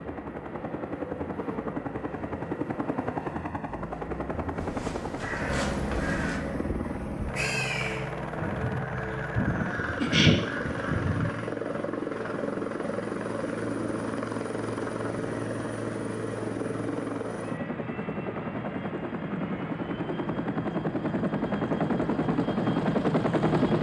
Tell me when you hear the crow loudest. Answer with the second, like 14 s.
10 s.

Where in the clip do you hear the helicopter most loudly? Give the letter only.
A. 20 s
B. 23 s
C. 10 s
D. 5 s
B.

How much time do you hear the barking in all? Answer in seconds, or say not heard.
not heard.